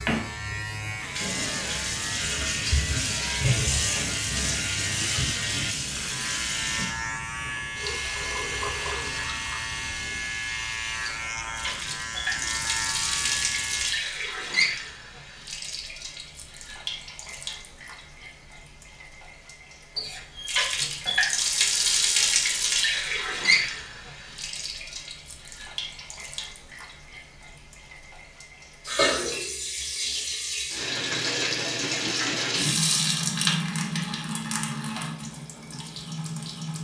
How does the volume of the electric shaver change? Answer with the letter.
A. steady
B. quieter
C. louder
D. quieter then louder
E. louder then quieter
A.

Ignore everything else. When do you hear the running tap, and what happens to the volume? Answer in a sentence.
You can hear the running tap from 0.1 to 36.7 s, at a steady volume.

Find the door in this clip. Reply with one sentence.
You can't hear the door here.